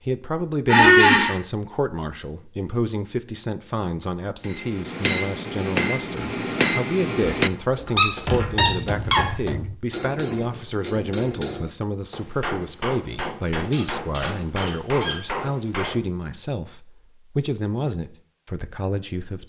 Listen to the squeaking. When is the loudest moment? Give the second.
1 s.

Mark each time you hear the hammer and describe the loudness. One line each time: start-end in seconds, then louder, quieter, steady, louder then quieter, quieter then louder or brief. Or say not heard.
4.4-16.1 quieter.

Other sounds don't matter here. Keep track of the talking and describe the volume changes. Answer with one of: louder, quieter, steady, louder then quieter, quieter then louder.
steady.